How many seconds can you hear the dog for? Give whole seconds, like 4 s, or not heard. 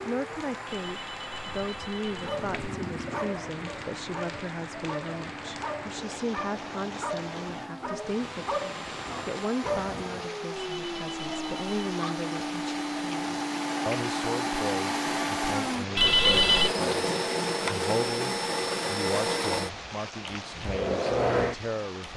8 s.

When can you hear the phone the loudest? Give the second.
16 s.